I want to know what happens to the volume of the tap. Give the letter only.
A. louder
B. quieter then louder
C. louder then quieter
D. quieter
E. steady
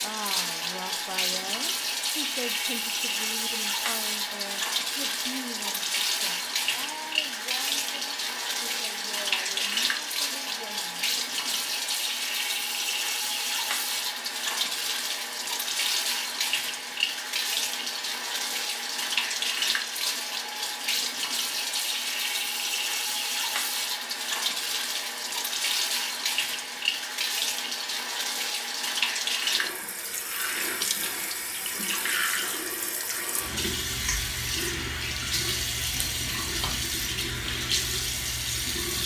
E.